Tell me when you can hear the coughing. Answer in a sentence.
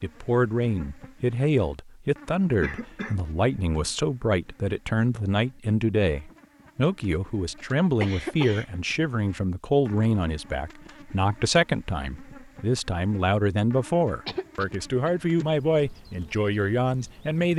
The coughing can be heard from 2.6 to 3.1 s, from 7.5 to 8.7 s and from 14.2 to 15.2 s.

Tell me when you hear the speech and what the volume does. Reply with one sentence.
You can hear the speech from 0.0 to 17.5 s, at a steady volume.